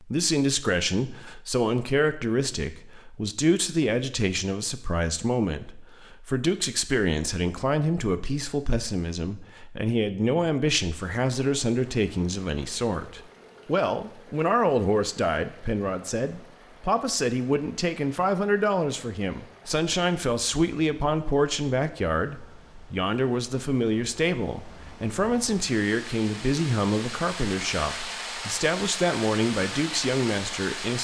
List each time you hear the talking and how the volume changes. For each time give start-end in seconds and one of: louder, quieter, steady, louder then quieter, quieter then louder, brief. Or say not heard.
0.0-30.9 steady.